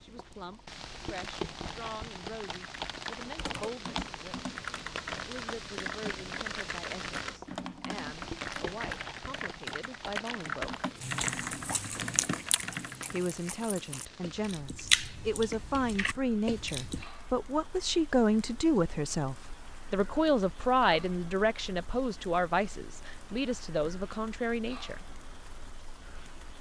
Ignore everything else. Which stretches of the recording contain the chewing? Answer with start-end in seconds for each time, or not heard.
10.9-17.1.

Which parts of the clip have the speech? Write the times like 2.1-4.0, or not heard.
0.0-4.5, 5.2-10.8, 13.1-25.1.